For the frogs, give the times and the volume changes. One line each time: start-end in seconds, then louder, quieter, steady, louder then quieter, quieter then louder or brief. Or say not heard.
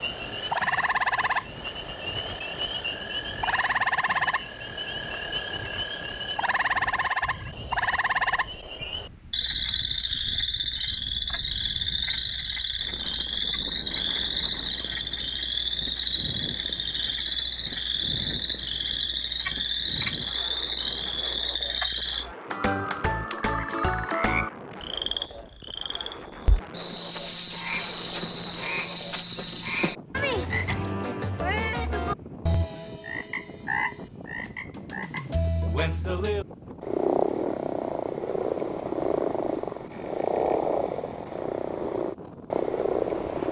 0.0-43.4 steady.